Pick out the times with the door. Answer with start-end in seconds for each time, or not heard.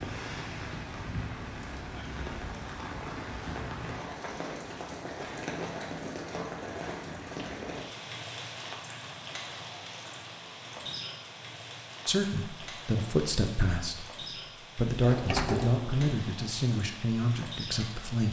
15.0-16.1.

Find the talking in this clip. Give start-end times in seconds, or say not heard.
12.1-18.2.